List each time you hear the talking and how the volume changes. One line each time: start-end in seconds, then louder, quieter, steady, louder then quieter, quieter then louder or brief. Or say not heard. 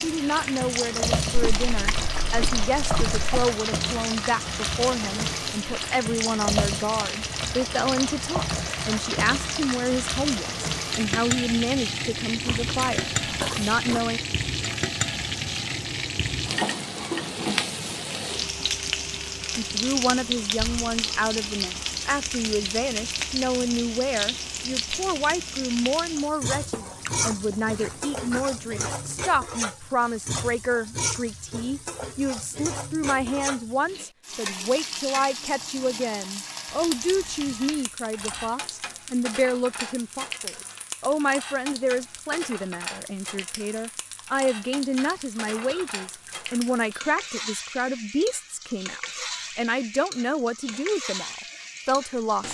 0.0-14.2 steady
19.6-52.4 steady.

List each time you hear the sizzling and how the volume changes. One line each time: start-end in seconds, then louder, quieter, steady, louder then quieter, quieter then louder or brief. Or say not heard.
0.0-52.4 quieter.